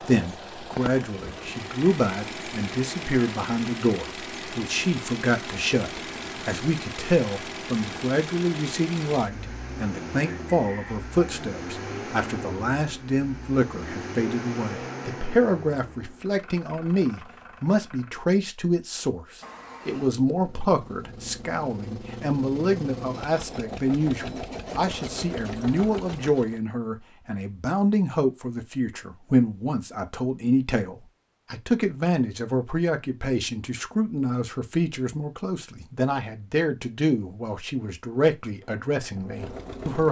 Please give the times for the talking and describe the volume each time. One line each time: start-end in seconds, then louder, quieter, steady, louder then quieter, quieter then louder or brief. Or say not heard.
0.0-40.0 steady.